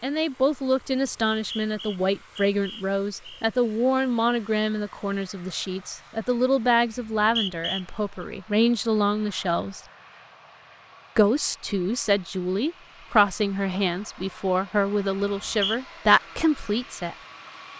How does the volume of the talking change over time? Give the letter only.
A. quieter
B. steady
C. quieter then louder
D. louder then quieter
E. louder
B.